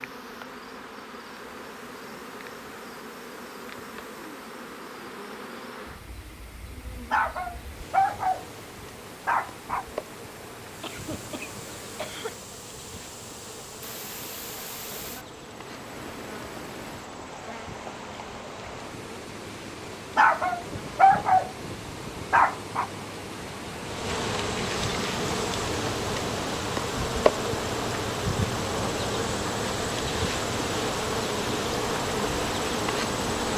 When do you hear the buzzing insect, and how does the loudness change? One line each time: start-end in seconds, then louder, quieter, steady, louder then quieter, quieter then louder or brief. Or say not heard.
0.0-33.5 louder.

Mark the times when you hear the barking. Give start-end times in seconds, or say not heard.
7.1-8.4, 9.2-9.8, 20.1-21.5, 22.3-22.9.